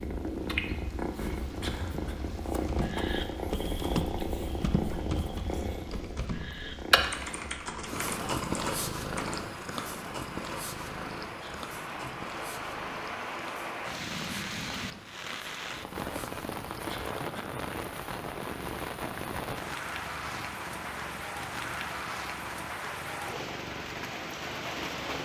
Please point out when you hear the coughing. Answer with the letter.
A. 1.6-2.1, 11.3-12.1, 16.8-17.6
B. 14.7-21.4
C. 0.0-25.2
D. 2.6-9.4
A.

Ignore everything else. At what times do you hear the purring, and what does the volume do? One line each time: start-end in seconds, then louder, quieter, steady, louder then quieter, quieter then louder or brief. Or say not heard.
0.0-25.2 quieter.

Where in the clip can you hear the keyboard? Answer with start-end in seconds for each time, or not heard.
2.6-9.4.